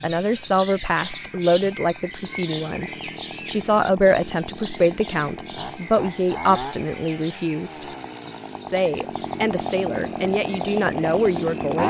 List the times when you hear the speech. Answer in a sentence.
The speech can be heard from 0.0 to 7.8 s and from 8.7 to 11.8 s.